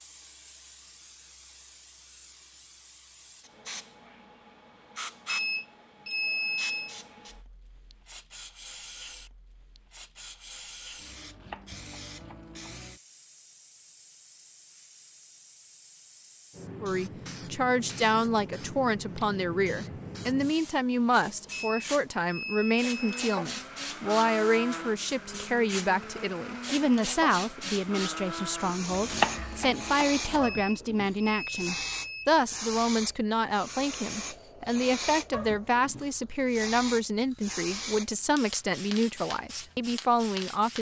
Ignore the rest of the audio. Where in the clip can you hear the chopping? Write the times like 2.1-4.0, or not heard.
11.2-12.8, 28.9-30.5.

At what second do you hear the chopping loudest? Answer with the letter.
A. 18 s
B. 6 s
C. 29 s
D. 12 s
C.